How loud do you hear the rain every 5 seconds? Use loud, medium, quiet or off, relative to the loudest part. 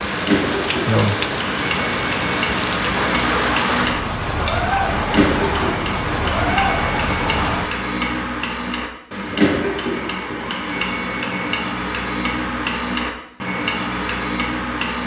loud, loud, off.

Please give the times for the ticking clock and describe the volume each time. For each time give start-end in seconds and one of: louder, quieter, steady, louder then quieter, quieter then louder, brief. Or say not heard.
0.0-15.0 steady.